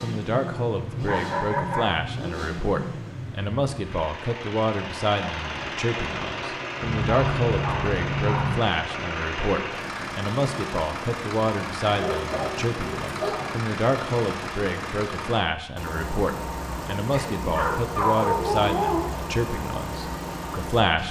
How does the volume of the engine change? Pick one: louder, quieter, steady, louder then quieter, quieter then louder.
steady.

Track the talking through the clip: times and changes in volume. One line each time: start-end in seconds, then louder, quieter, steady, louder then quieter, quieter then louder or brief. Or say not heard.
0.0-21.0 steady.